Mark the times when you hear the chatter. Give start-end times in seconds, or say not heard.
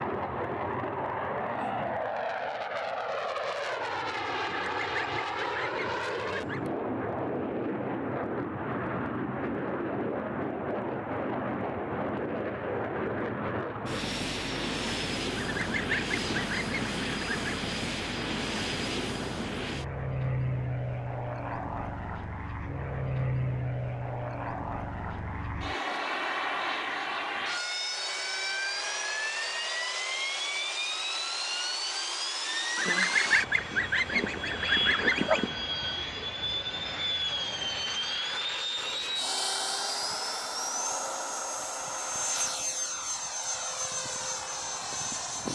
not heard.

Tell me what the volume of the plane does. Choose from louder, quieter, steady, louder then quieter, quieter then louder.
steady.